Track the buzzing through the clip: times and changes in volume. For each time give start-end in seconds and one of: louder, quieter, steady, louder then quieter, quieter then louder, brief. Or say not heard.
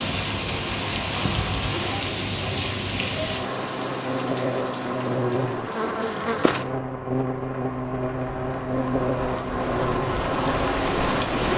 0.0-11.5 louder.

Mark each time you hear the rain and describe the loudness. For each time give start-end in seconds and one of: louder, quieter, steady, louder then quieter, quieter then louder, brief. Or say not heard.
0.0-11.5 quieter then louder.